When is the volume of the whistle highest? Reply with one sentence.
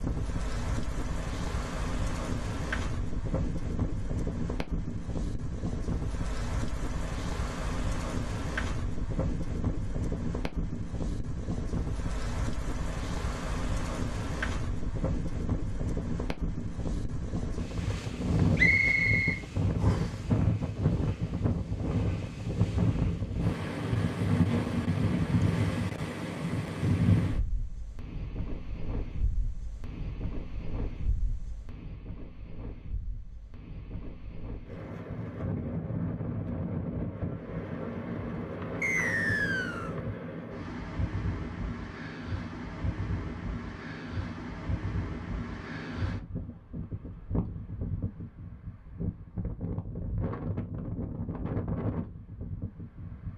The volume of the whistle peaks at 19 seconds.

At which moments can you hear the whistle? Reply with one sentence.
You can hear the whistle from 18.6 to 20.1 s and from 38.8 to 40.0 s.